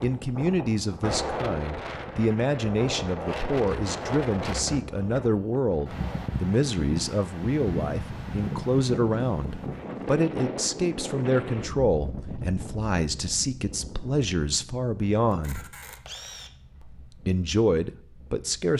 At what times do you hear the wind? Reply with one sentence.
You can hear the wind from 0.0 to 18.7 s.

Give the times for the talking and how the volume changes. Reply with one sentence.
The talking can be heard from 0.0 to 15.7 s, at a steady volume; and briefly from 16.8 to 18.7 s.